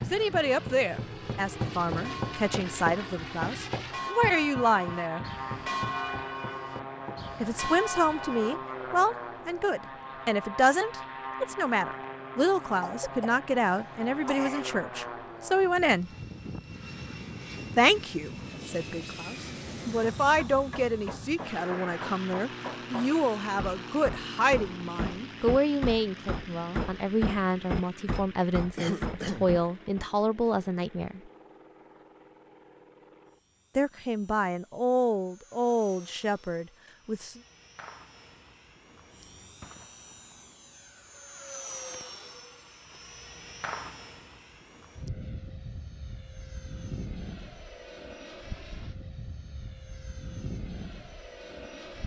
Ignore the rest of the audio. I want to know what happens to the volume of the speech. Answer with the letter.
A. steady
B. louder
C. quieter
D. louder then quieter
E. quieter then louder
A.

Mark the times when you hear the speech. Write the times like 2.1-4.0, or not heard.
0.0-5.2, 7.4-16.1, 17.8-31.2, 33.8-37.4.